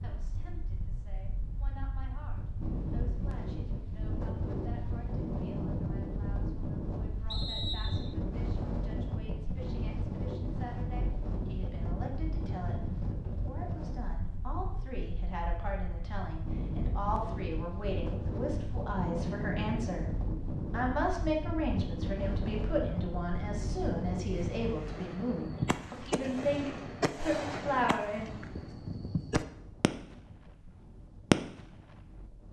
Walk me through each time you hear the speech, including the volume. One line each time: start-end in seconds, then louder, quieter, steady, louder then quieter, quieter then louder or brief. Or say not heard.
0.0-28.4 louder.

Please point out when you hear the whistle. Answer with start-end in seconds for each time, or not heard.
7.2-8.2.